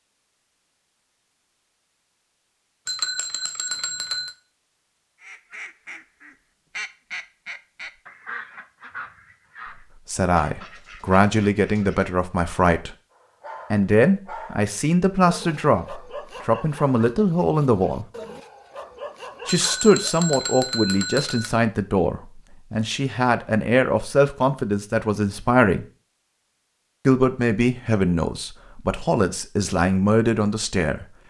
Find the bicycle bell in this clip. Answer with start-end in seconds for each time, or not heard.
2.9-4.3, 19.4-21.5.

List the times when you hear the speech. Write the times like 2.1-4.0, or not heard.
10.1-12.9, 13.7-18.1, 19.4-25.9, 27.1-31.1.